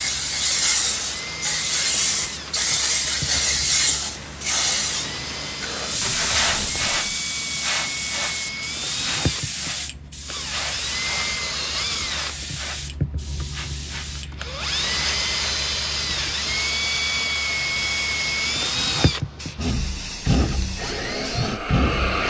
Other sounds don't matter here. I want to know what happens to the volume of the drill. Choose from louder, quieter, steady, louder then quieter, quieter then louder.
louder.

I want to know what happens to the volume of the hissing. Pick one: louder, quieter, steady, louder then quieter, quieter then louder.
quieter.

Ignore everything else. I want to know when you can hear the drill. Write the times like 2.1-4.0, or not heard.
0.1-22.2.